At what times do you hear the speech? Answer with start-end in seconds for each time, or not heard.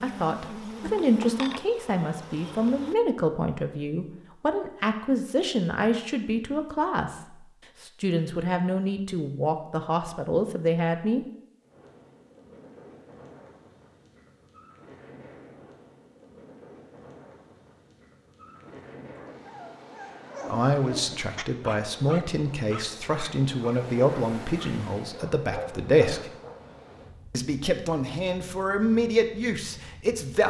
0.0-11.2, 20.4-26.2, 27.3-30.4.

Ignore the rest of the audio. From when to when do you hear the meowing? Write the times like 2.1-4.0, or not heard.
not heard.